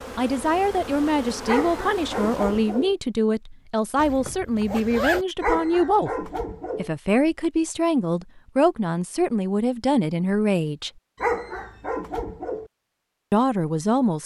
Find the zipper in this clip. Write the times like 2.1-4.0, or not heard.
4.0-5.2.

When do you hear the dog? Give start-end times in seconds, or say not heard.
1.4-3.0, 5.4-6.9, 11.2-12.7.